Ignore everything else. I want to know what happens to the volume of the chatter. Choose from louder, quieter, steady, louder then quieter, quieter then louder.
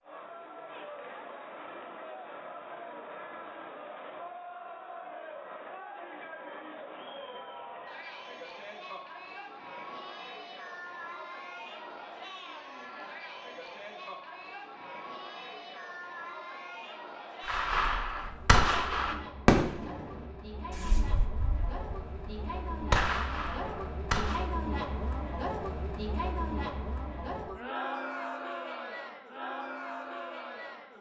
louder.